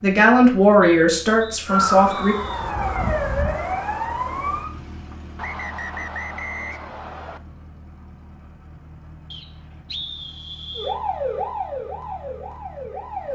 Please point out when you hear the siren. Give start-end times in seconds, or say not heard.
1.6-4.7, 10.8-13.3.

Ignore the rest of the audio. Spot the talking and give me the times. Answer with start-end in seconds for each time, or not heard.
0.0-2.4.